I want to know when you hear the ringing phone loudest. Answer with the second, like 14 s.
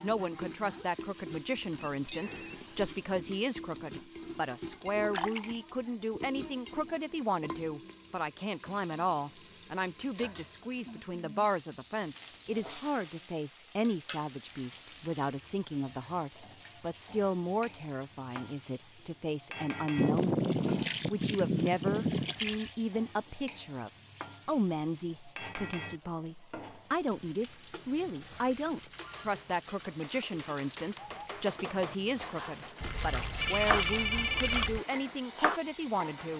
34 s.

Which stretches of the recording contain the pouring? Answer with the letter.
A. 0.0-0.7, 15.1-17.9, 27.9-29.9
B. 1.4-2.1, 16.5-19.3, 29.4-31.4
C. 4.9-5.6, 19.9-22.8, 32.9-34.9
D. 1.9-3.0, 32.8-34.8
C.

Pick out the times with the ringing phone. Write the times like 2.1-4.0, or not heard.
1.9-3.0, 32.8-34.8.